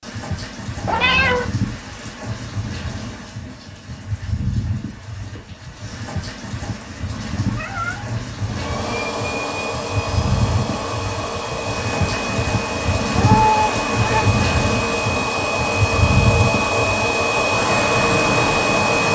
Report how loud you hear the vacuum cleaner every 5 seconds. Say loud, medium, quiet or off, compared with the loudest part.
off, medium, medium, loud.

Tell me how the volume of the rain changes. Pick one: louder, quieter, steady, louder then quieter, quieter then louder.
louder.